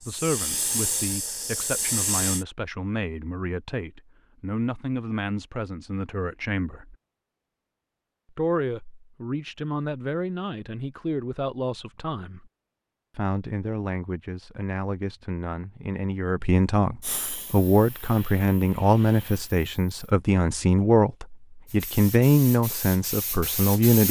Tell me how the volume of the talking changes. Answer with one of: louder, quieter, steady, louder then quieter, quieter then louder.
louder.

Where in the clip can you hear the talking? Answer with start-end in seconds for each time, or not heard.
0.1-7.0, 8.3-12.5, 13.2-24.0.